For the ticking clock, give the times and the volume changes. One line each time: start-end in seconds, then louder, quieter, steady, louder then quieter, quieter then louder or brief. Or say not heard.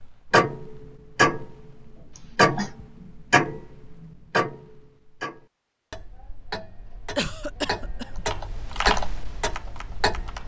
0.0-10.4 quieter then louder.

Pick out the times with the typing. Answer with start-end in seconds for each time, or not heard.
8.1-10.4.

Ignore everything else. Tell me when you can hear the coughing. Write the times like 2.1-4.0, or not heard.
2.1-2.8, 7.2-8.2.